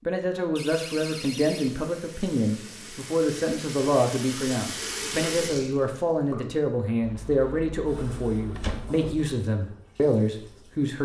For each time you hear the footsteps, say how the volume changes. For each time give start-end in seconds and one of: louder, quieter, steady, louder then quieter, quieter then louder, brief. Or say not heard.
not heard.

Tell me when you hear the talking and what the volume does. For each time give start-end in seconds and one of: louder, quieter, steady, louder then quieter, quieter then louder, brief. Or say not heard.
0.1-11.0 steady.